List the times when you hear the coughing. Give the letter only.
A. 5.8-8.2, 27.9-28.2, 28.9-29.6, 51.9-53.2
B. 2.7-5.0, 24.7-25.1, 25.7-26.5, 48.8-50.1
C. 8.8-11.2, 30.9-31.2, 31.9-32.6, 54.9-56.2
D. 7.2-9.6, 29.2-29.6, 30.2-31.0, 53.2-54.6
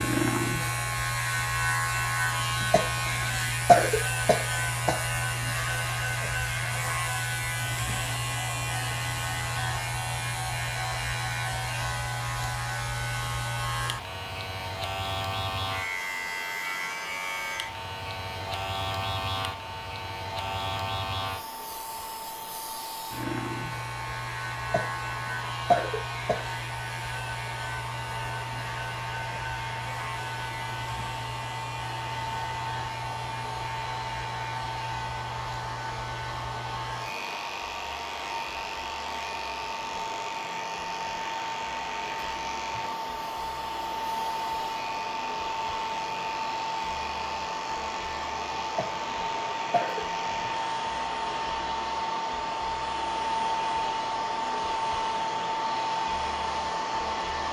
B.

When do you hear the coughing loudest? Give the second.
4 s.